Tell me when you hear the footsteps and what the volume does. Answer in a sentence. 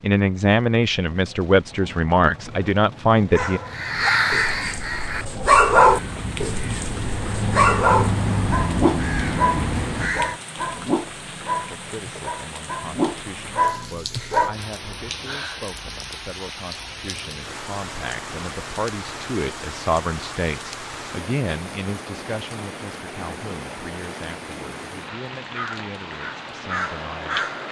The footsteps can't be heard in this clip.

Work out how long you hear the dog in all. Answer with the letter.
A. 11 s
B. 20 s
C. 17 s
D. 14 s
A.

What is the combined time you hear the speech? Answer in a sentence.
The speech can be heard for 19 seconds in total.